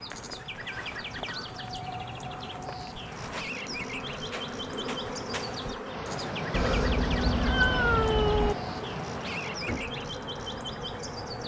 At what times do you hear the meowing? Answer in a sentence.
You can hear the meowing from 6.5 to 8.6 s.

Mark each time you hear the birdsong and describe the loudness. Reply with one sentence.
The birdsong can be heard from 0.0 to 11.4 s, at a steady volume.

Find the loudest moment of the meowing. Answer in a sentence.
The loudest moment of the meowing is at 8 seconds.